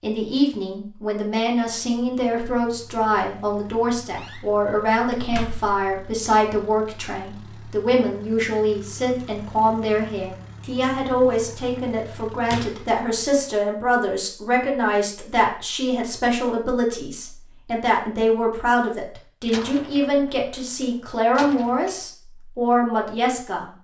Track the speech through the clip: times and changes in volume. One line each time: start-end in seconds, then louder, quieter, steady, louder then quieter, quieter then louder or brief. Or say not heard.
0.0-23.6 steady.